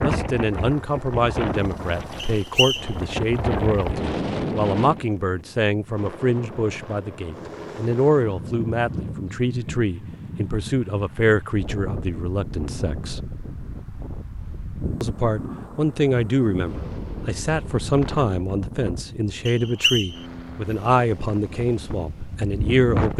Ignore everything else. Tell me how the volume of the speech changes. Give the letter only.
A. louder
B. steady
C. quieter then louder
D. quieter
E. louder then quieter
B.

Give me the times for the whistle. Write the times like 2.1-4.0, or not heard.
2.1-2.9, 19.4-20.2.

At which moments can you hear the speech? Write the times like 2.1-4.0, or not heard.
0.0-13.2, 15.0-23.1.